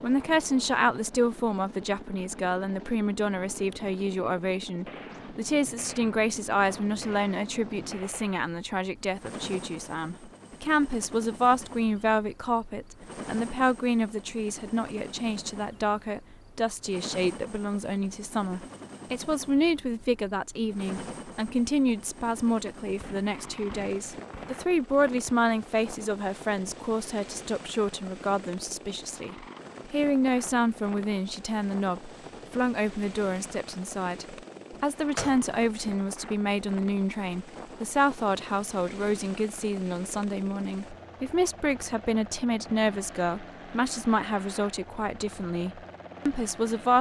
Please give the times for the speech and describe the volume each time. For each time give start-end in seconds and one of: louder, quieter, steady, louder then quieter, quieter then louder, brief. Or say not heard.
0.0-46.9 steady.